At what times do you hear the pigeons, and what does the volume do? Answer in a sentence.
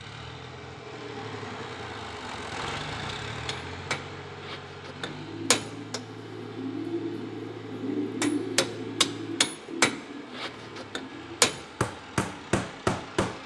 You can hear the pigeons from 5.0 to 12.6 s, getting louder then quieter.